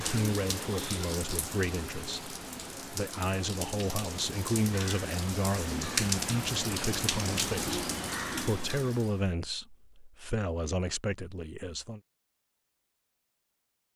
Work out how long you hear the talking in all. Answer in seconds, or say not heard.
12 s.